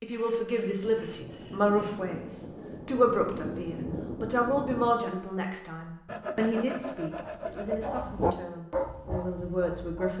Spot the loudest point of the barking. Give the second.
8 s.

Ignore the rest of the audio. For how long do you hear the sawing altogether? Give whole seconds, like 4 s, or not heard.
4 s.